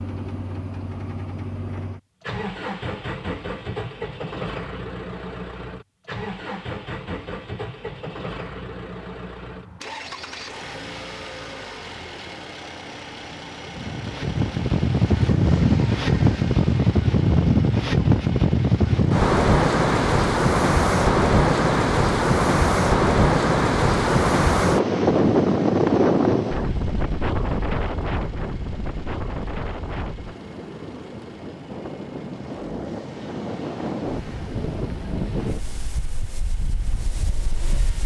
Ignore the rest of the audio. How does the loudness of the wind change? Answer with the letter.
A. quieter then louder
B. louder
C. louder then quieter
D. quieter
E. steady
D.